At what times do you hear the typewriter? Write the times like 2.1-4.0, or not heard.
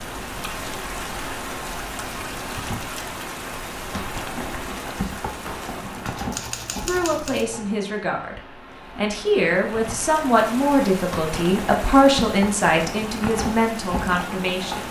6.0-7.8.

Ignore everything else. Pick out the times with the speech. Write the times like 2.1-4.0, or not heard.
6.8-14.8.